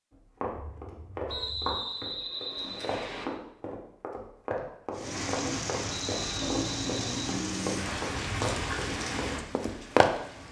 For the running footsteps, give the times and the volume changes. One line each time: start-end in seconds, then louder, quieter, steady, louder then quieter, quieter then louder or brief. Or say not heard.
0.1-10.1 steady.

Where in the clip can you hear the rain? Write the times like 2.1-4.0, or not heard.
4.9-10.4.